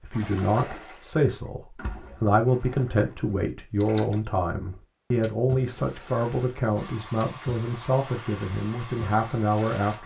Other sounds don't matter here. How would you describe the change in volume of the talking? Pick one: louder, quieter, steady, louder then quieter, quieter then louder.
steady.